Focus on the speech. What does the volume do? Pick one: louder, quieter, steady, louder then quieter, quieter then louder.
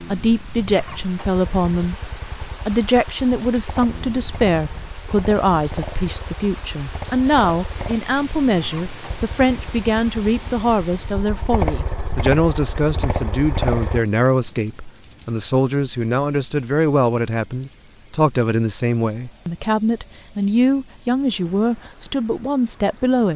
steady.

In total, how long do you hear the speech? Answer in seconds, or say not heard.
23 s.